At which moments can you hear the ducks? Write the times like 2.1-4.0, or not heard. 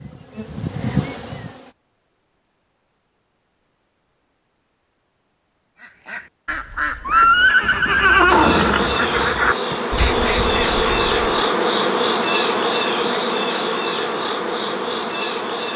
5.8-11.2.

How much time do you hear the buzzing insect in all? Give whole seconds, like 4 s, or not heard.
9 s.